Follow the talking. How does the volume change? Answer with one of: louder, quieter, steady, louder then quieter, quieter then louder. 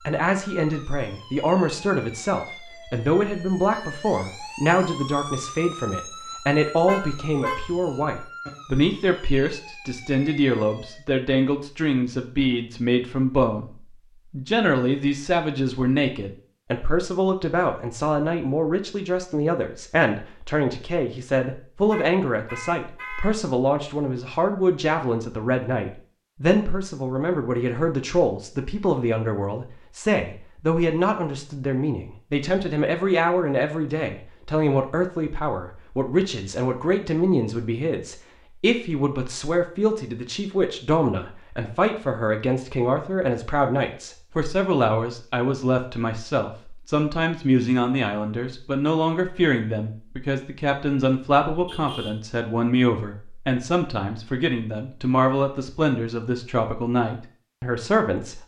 steady.